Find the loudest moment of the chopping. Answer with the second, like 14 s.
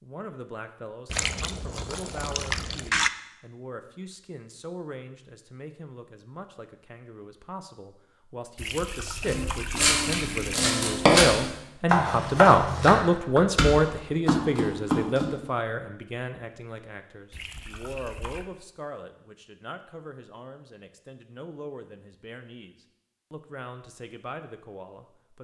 11 s.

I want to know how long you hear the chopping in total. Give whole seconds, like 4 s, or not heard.
6 s.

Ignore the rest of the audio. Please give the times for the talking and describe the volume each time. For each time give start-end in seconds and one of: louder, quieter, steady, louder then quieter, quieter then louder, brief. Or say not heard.
0.0-25.3 louder then quieter.